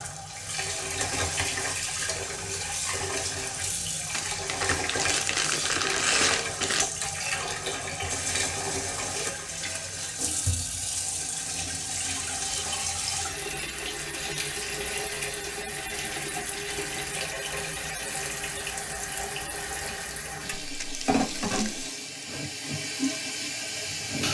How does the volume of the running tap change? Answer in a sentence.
The loudness of the running tap stays about the same.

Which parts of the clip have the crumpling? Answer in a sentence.
You can hear the crumpling from 4.1 to 6.8 s and from 20.6 to 21.9 s.